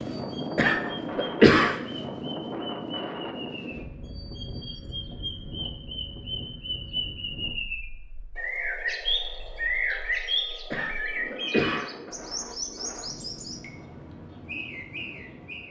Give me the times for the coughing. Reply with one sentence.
The coughing can be heard from 0.6 to 1.8 s and from 10.7 to 11.9 s.